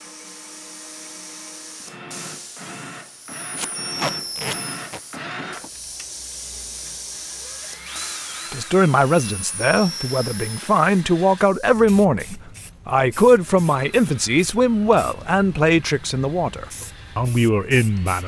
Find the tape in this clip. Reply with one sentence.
You can hear the tape from 3.5 to 5.0 s.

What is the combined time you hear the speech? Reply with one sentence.
The speech can be heard for 10 seconds in total.